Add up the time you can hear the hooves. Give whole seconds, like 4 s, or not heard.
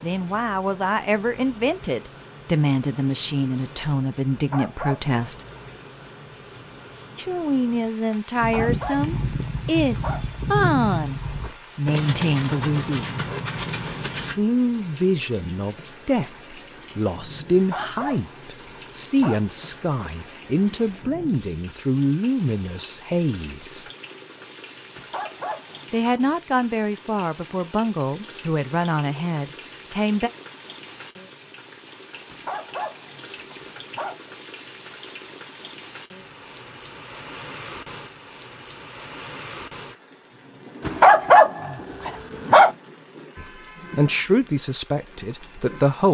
6 s.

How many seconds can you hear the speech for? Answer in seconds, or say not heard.
28 s.